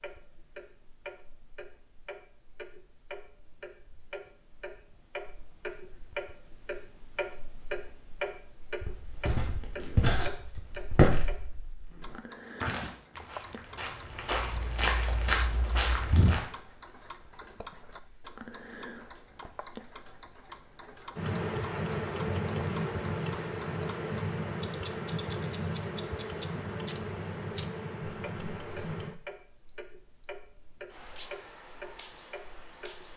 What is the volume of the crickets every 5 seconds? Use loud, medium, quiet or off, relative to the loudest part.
off, off, off, quiet, loud, loud, medium.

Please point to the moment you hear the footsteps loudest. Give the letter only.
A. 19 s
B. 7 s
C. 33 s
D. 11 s
D.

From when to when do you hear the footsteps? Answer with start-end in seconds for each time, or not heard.
8.8-16.4.